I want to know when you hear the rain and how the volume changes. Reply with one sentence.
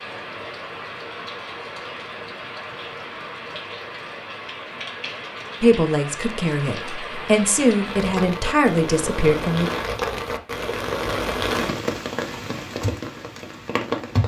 You can hear the rain from 0.0 to 14.2 s, getting louder.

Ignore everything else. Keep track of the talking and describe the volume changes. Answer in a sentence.
The loudness of the talking goes down, then up.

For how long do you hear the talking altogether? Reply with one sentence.
The talking can be heard for 4 seconds in total.